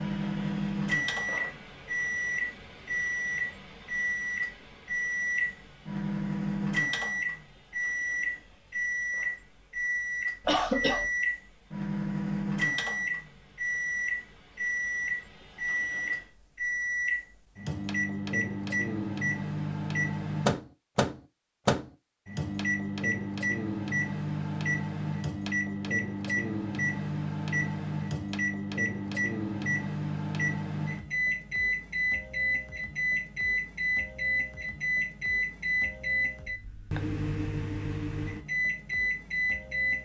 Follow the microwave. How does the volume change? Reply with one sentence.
The volume of the microwave stays about the same.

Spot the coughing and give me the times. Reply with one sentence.
You can hear the coughing from 10.4 to 11.1 s.